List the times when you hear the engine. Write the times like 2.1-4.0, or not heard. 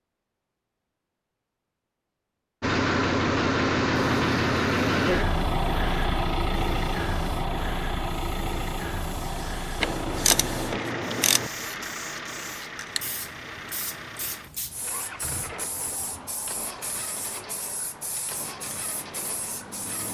2.6-20.0.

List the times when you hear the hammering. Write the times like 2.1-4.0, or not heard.
not heard.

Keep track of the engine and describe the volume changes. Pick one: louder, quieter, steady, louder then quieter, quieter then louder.
quieter.